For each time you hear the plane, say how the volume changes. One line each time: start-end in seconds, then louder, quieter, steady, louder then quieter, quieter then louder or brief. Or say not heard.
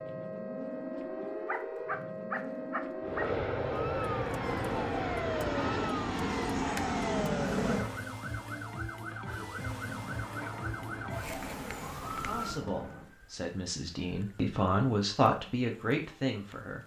3.0-8.1 steady.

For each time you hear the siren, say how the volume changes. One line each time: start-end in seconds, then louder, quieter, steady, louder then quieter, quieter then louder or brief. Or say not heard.
0.0-16.8 quieter.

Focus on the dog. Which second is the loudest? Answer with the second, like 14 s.
2 s.